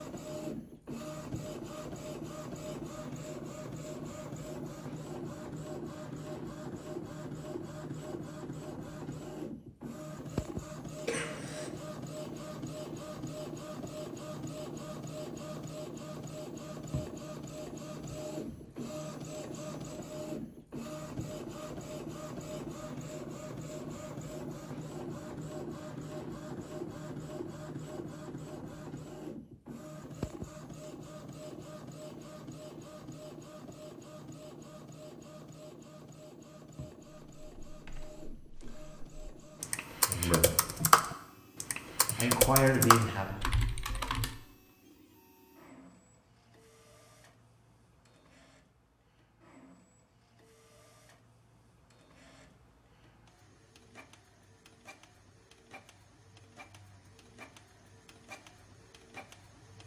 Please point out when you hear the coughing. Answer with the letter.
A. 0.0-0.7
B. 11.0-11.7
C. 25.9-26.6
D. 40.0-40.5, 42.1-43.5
B.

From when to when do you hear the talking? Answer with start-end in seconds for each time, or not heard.
40.0-40.5, 42.1-43.5.